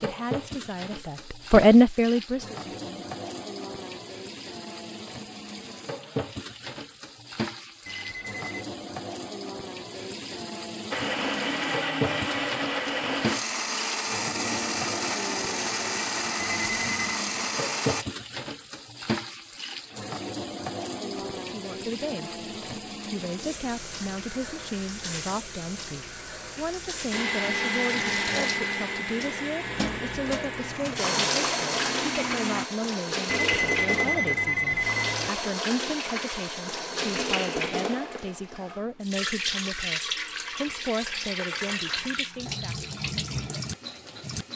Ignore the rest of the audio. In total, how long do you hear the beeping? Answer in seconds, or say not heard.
4 s.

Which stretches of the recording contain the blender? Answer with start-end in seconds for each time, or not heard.
10.9-18.1, 27.1-32.7.